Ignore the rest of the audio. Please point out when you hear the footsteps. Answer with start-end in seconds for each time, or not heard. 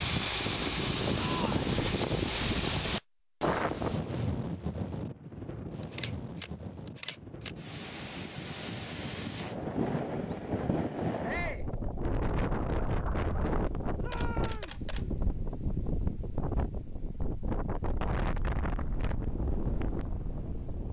not heard.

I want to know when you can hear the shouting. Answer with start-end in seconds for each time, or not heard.
1.1-1.7, 11.2-11.7, 14.0-14.8.